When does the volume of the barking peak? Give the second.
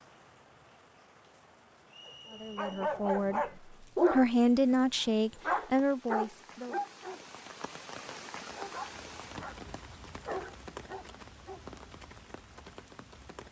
4 s.